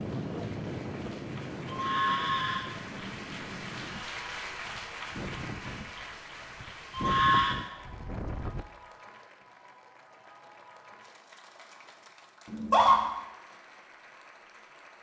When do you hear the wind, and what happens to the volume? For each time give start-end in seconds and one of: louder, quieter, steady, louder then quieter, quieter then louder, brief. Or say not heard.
0.0-8.7 quieter then louder.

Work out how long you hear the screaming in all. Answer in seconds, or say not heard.
2 s.